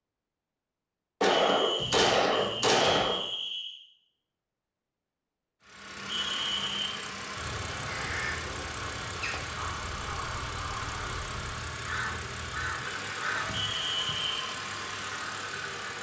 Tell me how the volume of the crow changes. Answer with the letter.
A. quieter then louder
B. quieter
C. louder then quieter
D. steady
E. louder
D.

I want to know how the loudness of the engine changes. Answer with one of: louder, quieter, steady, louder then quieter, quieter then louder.
steady.